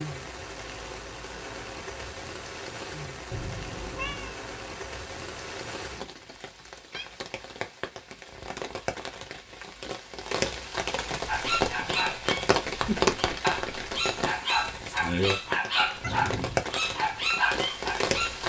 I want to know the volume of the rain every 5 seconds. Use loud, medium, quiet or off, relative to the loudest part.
medium, medium, loud, loud.